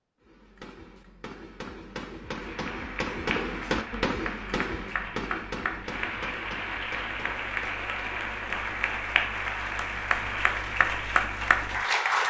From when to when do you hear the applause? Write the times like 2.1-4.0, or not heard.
2.2-12.2.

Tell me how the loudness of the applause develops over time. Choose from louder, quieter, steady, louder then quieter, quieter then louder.
louder.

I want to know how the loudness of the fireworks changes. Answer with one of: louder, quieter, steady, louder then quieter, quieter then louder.
louder then quieter.